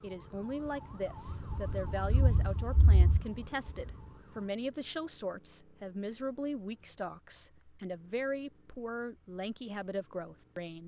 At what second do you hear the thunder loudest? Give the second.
2 s.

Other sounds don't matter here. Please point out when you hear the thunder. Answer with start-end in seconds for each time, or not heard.
1.4-4.0.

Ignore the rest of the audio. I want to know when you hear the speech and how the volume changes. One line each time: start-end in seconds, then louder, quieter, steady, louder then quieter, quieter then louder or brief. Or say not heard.
0.0-10.8 steady.